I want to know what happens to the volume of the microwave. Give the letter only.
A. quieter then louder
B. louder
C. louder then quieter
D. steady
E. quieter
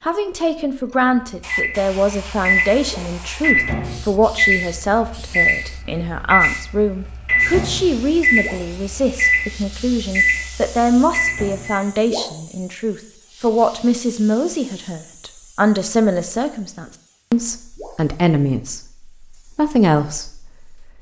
D.